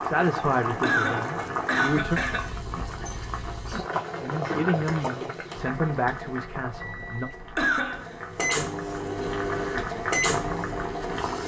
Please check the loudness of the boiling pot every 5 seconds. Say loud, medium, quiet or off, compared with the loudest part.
loud, medium, loud.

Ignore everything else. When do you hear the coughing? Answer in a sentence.
You can hear the coughing from 0.8 to 2.5 s and from 7.5 to 8.2 s.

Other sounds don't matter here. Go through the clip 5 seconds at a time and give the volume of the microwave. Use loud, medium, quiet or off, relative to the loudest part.
off, loud, loud.